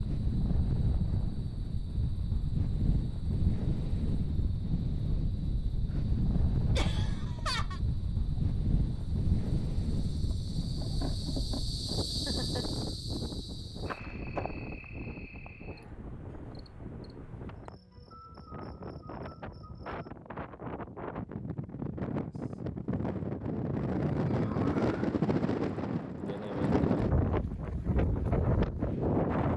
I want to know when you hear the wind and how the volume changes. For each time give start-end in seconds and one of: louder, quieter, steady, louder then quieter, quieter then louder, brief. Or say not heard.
0.0-29.5 quieter then louder.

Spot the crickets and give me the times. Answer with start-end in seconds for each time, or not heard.
0.0-20.1.